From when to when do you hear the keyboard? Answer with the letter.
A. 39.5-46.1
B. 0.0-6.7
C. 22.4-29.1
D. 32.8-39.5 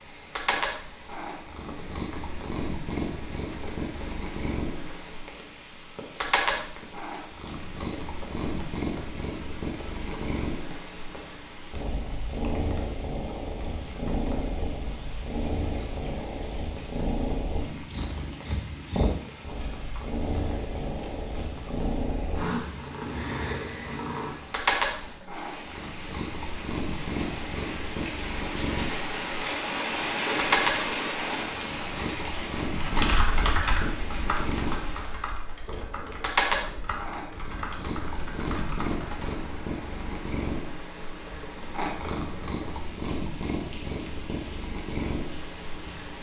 D.